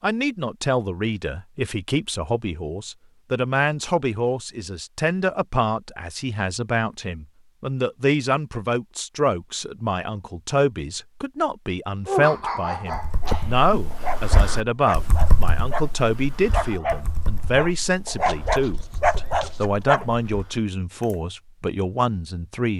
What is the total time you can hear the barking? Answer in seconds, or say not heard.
8 s.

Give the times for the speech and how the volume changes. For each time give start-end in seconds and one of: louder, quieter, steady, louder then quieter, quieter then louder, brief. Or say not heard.
0.0-22.7 steady.